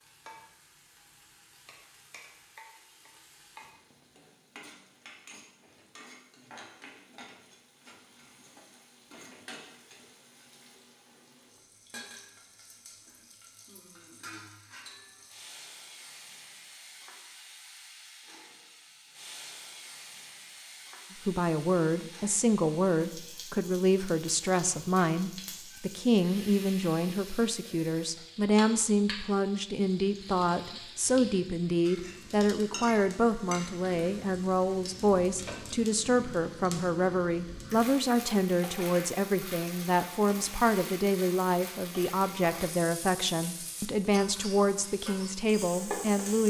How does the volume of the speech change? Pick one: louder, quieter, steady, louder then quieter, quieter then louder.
steady.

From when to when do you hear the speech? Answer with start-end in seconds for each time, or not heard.
21.2-46.4.